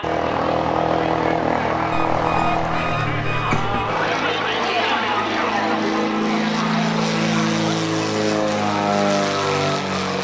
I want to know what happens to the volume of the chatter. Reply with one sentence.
The loudness of the chatter goes up, then down.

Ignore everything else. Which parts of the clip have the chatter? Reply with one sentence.
You can hear the chatter from 0.0 to 10.1 s.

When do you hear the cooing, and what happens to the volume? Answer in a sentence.
You can't hear the cooing here.